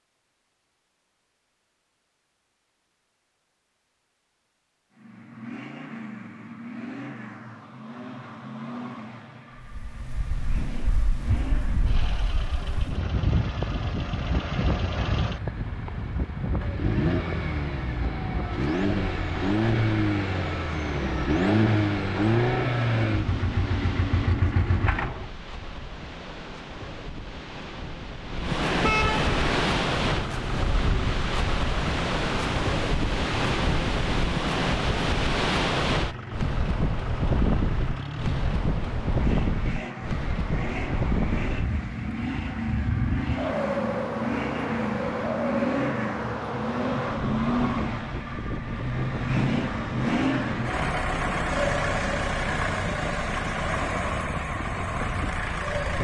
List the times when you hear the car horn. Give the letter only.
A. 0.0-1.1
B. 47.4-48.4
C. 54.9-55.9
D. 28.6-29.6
D.